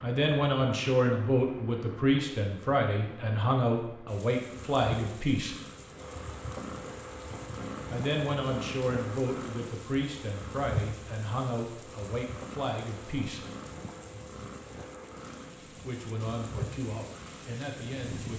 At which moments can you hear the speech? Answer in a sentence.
The speech can be heard from 0.0 to 5.6 s, from 7.9 to 13.4 s and from 15.7 to 18.3 s.